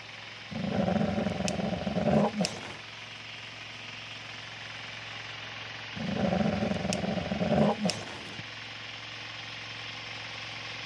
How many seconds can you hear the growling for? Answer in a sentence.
You can hear the growling for 5 seconds altogether.